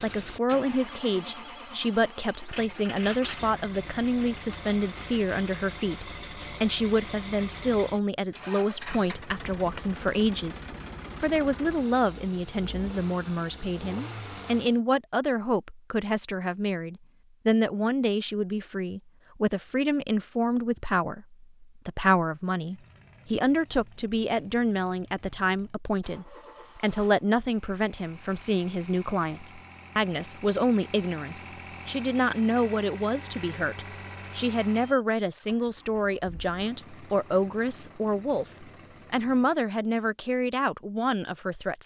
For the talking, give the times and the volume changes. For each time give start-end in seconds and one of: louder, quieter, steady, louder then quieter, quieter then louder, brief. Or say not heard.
0.0-41.8 steady.